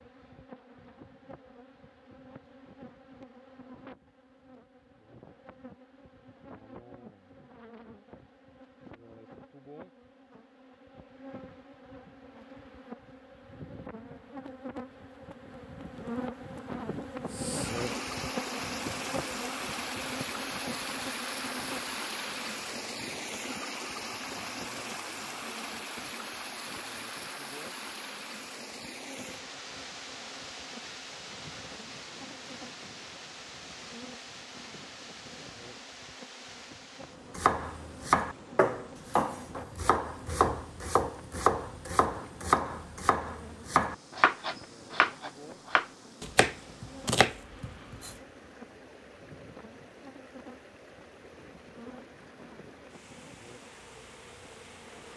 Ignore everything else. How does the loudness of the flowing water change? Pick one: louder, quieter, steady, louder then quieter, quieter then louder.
quieter.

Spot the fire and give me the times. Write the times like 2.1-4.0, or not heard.
not heard.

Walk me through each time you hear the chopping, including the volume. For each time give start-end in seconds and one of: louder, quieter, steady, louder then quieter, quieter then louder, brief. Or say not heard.
37.4-48.1 steady.